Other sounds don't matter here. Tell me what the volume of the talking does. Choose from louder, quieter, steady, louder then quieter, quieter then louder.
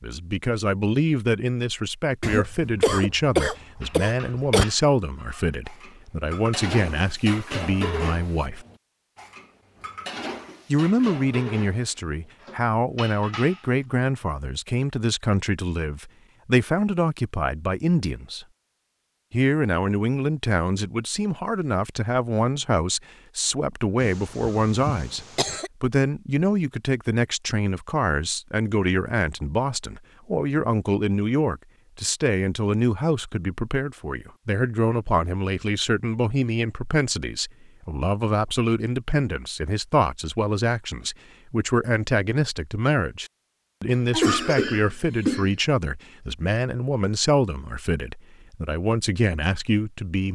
steady.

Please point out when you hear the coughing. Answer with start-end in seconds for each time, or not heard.
2.2-4.7, 24.0-25.7, 43.9-45.5.